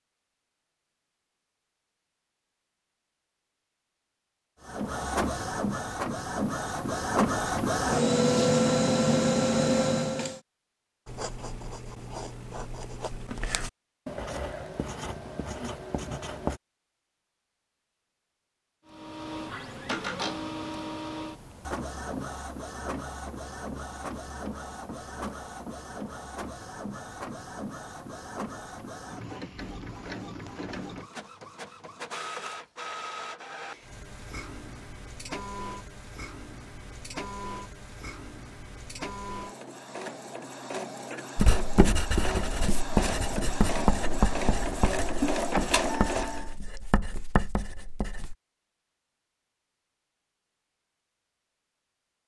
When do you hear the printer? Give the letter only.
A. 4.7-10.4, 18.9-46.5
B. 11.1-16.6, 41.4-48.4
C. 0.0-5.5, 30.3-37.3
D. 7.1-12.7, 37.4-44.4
A.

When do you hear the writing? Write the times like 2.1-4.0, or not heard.
11.1-16.6, 41.4-48.4.